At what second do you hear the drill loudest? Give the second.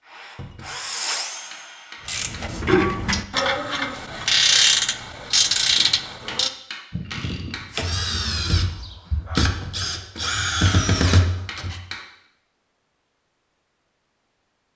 11 s.